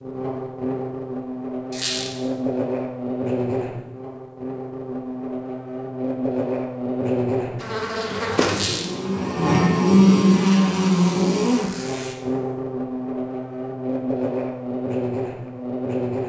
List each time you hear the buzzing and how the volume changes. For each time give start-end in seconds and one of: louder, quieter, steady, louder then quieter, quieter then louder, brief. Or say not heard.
0.0-16.2 louder then quieter.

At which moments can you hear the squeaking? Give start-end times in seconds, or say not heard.
1.7-2.2, 8.5-8.9, 10.9-12.2.